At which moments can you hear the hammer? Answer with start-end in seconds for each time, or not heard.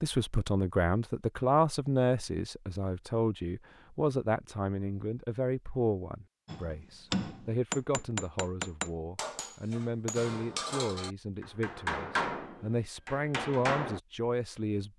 6.5-14.0.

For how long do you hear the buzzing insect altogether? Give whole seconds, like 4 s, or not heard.
not heard.